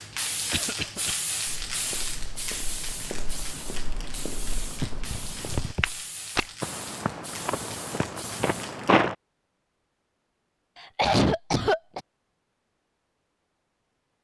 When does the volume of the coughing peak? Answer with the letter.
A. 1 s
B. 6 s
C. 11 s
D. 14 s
C.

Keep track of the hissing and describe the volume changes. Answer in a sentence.
The volume of the hissing goes down.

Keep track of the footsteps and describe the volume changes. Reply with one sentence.
The loudness of the footsteps goes up.